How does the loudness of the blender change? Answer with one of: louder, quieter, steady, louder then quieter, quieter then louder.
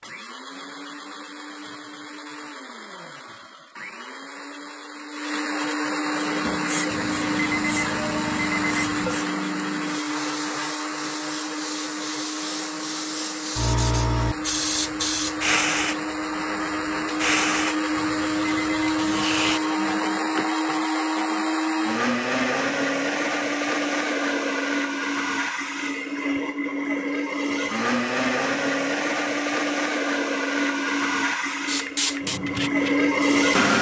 louder.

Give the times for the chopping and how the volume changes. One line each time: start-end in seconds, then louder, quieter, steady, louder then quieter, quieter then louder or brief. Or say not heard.
not heard.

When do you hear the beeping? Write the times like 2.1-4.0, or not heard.
6.9-9.2, 17.9-19.6.